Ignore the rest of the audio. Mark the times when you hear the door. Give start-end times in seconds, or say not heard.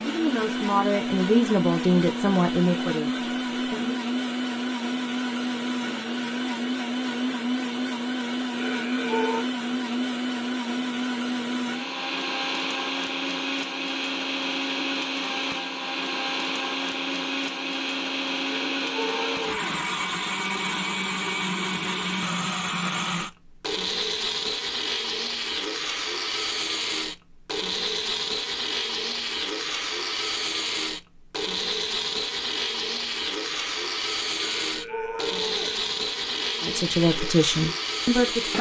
not heard.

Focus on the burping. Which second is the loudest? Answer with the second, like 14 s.
9 s.